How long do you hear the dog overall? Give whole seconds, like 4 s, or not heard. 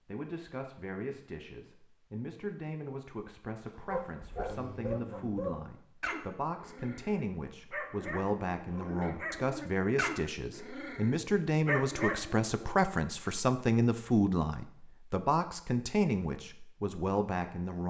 9 s.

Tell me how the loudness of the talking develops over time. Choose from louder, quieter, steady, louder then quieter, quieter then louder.
louder.